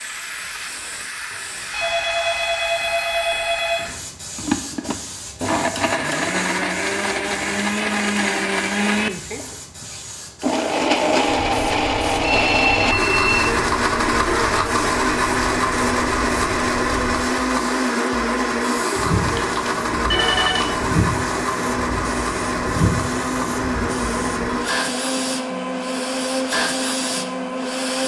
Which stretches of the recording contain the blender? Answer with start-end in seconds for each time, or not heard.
4.3-28.0.